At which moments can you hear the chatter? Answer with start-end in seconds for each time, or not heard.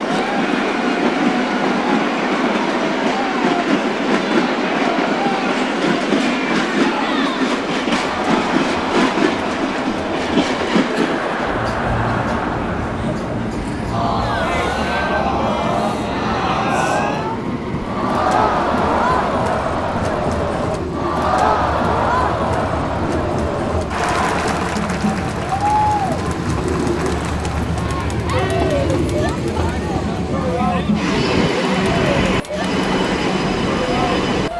0.0-34.5.